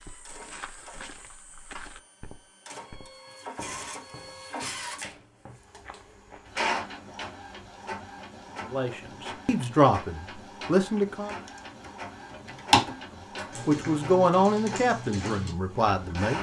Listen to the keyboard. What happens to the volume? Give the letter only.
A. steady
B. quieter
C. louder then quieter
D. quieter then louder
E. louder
C.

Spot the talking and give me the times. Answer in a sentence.
You can hear the talking from 8.7 to 11.3 s and from 13.7 to 16.3 s.